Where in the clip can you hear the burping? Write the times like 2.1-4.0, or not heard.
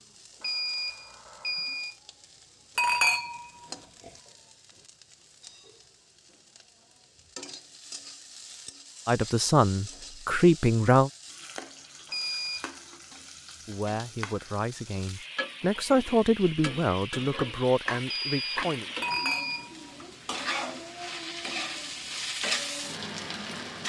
not heard.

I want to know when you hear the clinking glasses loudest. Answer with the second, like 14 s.
3 s.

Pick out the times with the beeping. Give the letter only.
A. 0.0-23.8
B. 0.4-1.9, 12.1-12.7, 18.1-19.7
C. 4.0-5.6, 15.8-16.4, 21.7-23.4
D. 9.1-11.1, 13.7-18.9
B.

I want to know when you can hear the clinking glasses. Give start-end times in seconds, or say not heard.
2.8-4.1, 19.0-20.4.